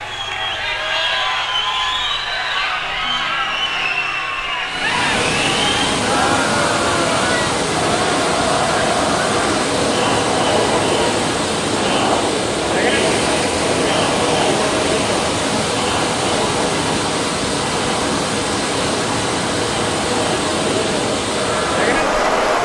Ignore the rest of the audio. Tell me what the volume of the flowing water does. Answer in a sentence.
The volume of the flowing water stays about the same.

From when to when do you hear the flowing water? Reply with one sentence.
You can hear the flowing water from 4.7 to 22.6 s.